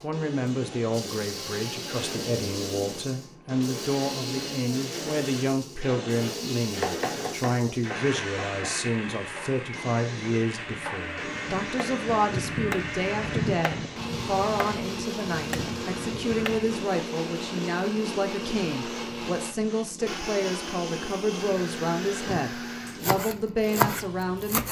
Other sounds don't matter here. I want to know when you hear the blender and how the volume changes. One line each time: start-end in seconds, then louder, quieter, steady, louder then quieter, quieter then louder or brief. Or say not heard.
0.0-23.1 steady.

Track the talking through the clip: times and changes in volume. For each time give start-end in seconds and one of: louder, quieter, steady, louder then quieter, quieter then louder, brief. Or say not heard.
0.0-24.6 steady.